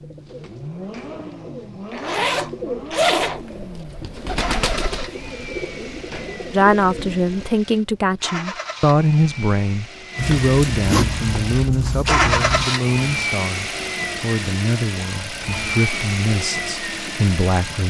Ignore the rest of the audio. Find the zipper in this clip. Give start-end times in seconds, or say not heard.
1.9-3.4, 10.2-12.7.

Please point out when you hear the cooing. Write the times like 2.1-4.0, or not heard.
0.0-7.5.